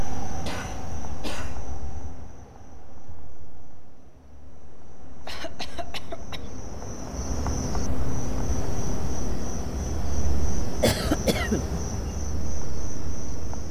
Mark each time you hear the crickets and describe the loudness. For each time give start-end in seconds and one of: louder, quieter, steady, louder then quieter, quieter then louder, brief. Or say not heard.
0.0-13.6 quieter then louder.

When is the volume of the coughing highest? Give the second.
11 s.